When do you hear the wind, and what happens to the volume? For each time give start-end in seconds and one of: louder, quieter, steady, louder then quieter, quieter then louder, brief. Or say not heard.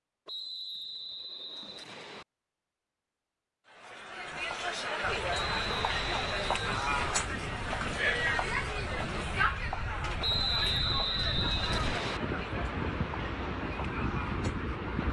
4.2-15.0 louder.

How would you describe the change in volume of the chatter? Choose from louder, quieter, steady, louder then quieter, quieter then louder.
quieter.